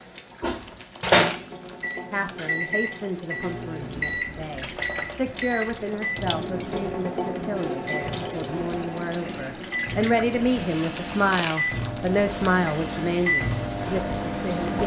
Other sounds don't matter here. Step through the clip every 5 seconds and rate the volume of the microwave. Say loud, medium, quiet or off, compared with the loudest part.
loud, medium, loud.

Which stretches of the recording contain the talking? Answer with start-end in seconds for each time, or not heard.
2.1-14.8.